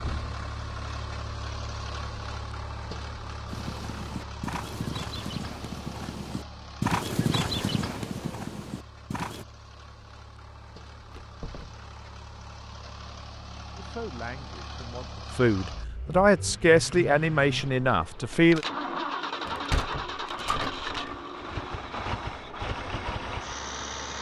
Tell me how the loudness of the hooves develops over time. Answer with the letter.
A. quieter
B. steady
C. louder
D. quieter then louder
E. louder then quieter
E.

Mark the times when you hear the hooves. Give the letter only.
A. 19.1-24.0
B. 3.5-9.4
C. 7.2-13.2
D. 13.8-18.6
B.